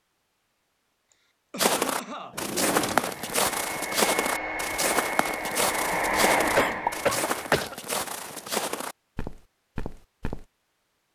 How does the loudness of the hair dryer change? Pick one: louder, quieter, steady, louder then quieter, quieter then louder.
louder.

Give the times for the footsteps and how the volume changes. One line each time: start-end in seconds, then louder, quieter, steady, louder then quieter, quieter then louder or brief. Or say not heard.
1.6-10.4 quieter.